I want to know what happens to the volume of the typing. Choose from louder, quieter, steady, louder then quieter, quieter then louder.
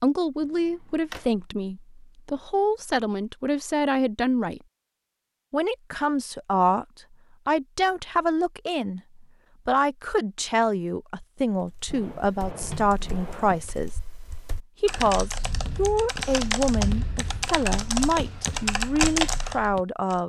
louder.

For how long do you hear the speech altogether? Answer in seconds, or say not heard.
18 s.